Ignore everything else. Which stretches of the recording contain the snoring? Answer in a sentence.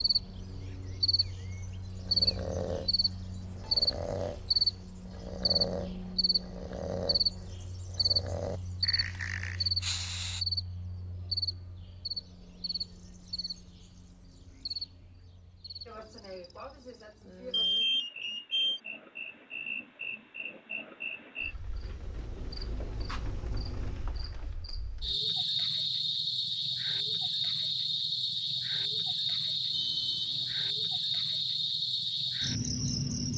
You can hear the snoring from 1.9 to 10.4 s.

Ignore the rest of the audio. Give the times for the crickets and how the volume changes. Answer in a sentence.
The crickets can be heard from 0.0 to 33.3 s, getting quieter then louder.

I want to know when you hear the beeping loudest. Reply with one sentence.
The loudest moment of the beeping is at 18 seconds.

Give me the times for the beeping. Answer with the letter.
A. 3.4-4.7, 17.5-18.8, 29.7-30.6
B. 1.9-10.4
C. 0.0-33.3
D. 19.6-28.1
A.